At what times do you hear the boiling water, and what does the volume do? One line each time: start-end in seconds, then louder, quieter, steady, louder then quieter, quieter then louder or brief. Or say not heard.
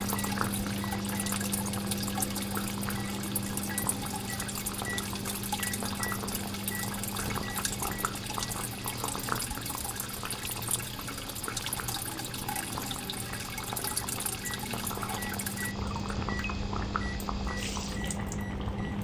0.0-18.9 steady.